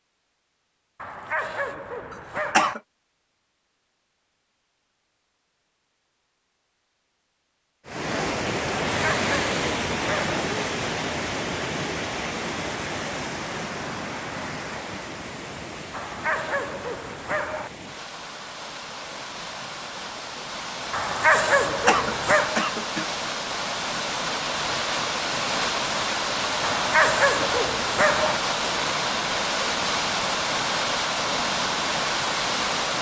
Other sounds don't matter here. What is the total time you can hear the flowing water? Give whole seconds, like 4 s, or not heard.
25 s.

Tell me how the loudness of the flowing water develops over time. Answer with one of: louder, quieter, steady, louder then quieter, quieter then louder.
quieter then louder.